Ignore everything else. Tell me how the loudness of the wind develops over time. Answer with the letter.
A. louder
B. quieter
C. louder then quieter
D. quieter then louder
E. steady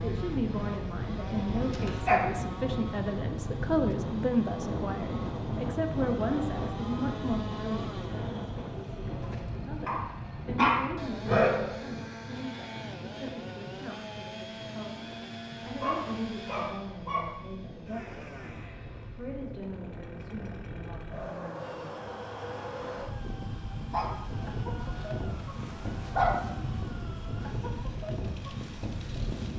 D.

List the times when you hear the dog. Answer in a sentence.
The dog can be heard from 1.6 to 2.4 s, from 9.8 to 11.7 s, from 15.7 to 17.4 s and from 23.9 to 26.4 s.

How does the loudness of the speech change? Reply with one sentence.
The loudness of the speech goes down.